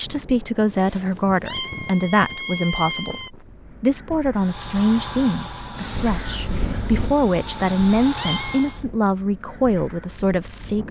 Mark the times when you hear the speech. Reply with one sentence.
The speech can be heard from 0.0 to 10.8 s.